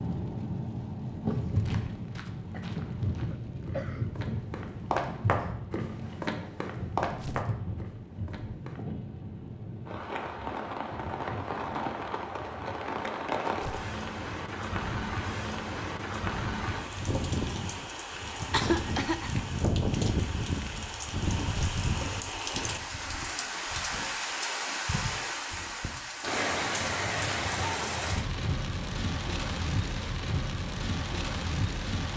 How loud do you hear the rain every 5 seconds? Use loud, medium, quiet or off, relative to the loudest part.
loud, medium, loud, loud, loud, loud, loud.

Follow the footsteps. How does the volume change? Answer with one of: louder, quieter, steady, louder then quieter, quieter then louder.
louder then quieter.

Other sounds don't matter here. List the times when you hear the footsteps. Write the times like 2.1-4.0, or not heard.
1.3-8.8.